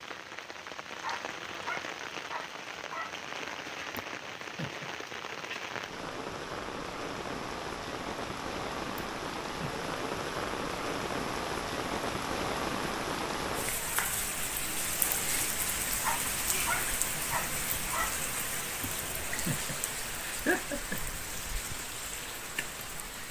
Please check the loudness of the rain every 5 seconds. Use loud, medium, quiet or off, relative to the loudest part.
medium, loud, loud, loud, medium.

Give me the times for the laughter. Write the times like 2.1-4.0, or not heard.
3.9-4.9, 8.9-9.8, 18.8-21.2.